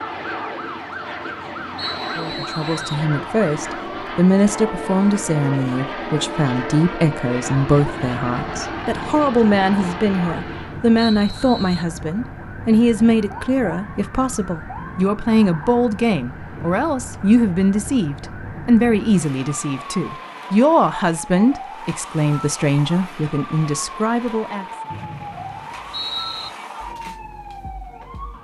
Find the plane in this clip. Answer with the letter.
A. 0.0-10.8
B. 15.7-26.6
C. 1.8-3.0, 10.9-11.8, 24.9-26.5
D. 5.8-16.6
A.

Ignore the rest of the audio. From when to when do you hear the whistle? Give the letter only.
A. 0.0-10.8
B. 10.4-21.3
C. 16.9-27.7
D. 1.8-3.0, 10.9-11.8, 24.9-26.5
D.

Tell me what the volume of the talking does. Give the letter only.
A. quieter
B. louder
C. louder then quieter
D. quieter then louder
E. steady
E.